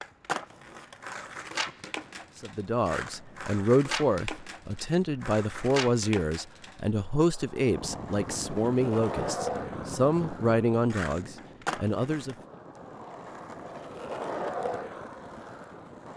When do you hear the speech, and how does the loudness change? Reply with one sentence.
You can hear the speech from 2.4 to 12.3 s, at a steady volume.